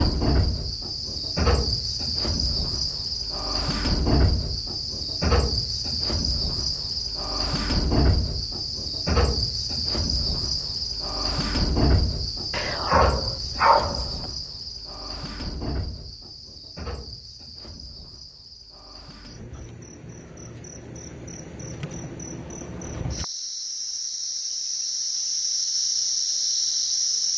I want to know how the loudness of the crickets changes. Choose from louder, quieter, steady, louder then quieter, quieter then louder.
quieter then louder.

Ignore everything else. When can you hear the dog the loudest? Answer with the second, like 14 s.
14 s.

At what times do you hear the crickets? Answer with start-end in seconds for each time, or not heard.
0.0-27.3.